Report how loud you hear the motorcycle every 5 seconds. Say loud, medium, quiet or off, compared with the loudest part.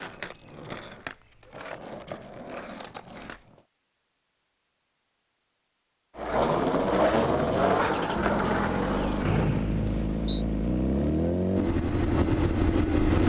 off, medium, loud.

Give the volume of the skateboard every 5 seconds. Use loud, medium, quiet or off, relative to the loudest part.
quiet, loud, off.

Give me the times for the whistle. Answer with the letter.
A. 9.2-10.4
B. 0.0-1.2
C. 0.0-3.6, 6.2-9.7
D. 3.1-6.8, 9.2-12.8
A.